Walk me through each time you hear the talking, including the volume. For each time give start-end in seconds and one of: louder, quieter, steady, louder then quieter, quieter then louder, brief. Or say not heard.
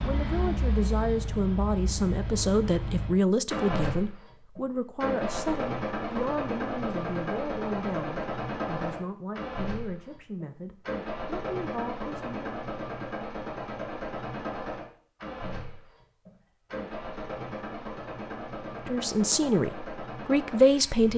0.0-12.5 quieter
18.7-21.1 brief.